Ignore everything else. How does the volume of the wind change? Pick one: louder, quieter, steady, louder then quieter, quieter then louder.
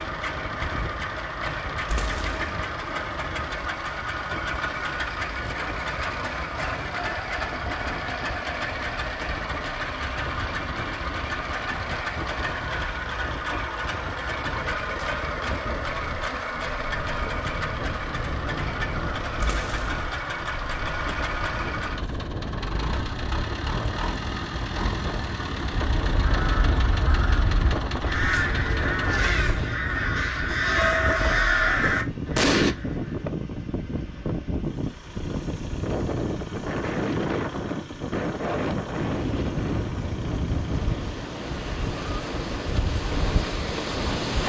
louder.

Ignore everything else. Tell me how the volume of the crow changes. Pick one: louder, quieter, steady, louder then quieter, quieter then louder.
louder.